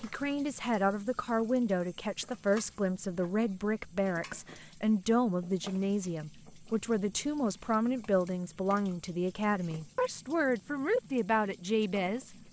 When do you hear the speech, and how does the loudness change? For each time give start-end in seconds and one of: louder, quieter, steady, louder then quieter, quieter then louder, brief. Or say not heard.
0.0-12.3 steady.